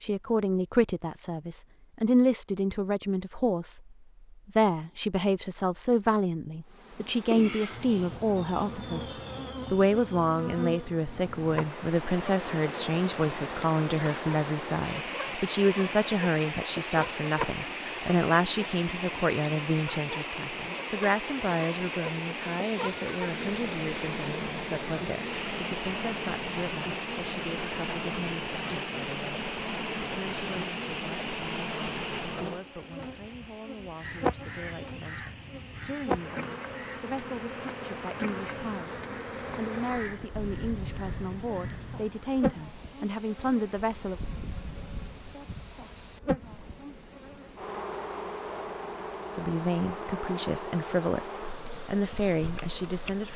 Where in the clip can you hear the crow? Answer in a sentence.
You can hear the crow from 34.0 to 42.1 s.